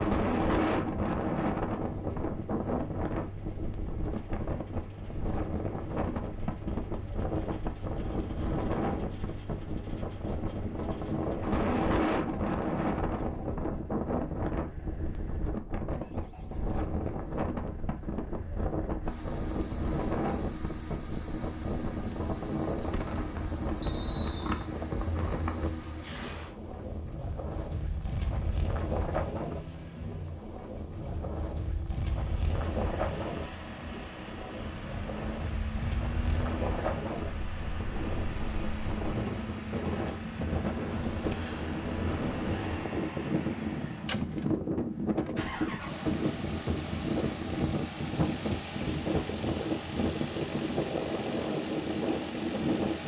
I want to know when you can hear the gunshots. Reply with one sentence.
The gunshots can't be heard in this clip.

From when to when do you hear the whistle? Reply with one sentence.
The whistle can be heard from 23.8 to 24.6 s.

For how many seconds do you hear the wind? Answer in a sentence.
The wind can be heard for 53 seconds in total.